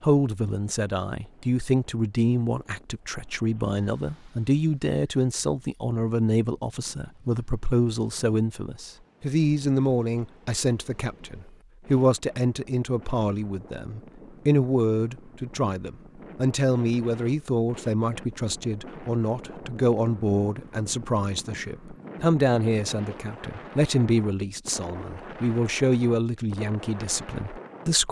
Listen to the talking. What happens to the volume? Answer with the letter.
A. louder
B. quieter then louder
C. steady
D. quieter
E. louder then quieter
C.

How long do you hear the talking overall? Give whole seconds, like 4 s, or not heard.
28 s.